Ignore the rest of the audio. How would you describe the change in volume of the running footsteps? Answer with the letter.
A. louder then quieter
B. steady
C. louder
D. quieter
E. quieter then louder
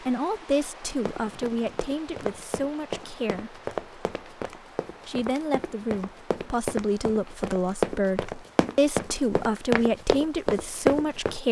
C.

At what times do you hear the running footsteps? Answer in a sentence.
The running footsteps can be heard from 1.1 to 11.3 s.